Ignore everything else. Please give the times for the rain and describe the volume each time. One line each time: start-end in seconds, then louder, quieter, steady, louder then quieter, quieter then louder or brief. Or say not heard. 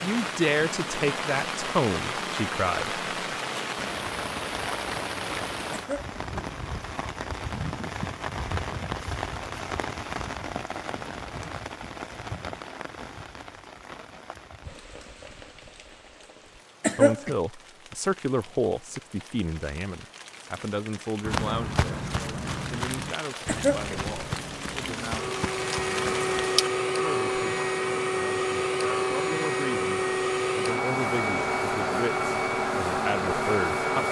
0.0-26.7 quieter then louder.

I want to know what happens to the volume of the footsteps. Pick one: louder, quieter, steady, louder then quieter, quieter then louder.
quieter.